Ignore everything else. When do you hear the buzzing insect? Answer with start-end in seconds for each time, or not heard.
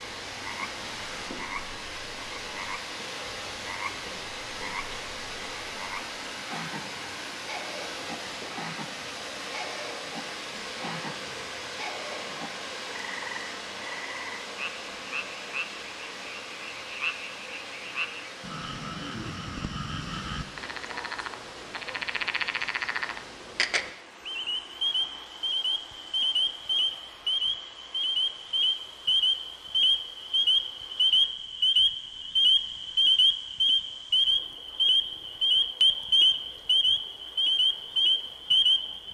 not heard.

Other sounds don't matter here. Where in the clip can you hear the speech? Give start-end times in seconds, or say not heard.
not heard.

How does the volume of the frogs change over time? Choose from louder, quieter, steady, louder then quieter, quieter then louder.
louder.